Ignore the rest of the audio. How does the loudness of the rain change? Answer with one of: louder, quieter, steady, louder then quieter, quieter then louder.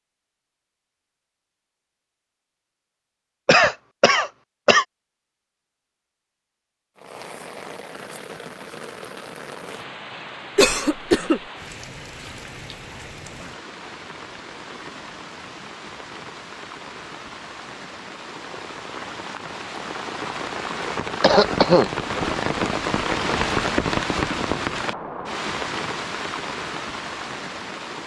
louder.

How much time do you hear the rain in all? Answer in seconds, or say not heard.
21 s.